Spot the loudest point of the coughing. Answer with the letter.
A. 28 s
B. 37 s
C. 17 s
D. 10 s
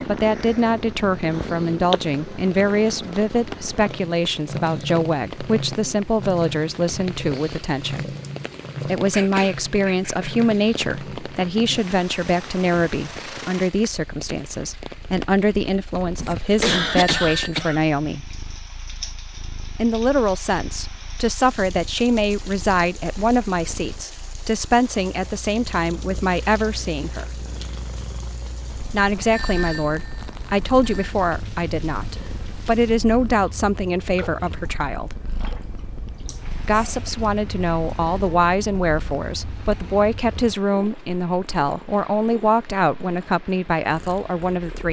C.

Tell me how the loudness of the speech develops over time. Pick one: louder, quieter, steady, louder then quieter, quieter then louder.
steady.